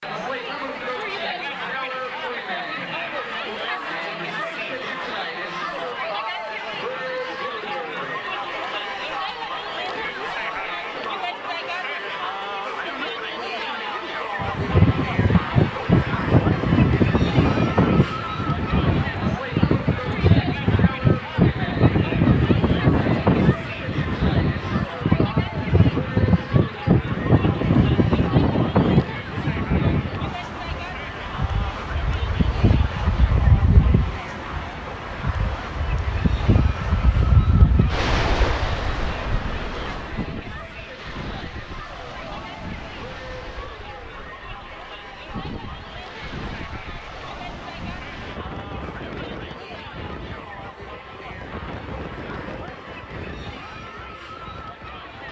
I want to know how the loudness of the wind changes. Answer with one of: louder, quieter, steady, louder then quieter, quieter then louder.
quieter.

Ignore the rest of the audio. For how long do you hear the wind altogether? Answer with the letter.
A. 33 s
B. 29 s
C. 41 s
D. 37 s
C.